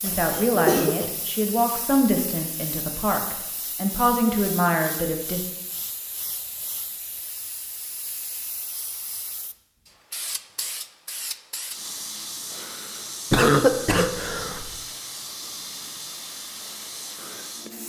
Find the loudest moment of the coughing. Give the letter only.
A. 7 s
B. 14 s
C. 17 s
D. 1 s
B.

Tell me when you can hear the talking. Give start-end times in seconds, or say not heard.
0.0-5.4.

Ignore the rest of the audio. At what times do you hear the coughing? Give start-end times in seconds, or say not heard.
0.1-1.1, 13.3-14.8.